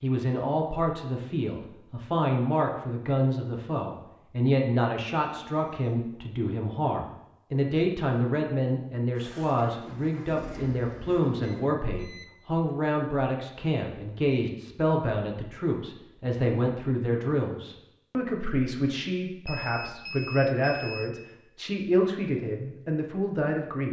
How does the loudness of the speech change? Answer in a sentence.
The volume of the speech stays about the same.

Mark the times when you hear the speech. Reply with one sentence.
You can hear the speech from 0.0 to 23.8 s.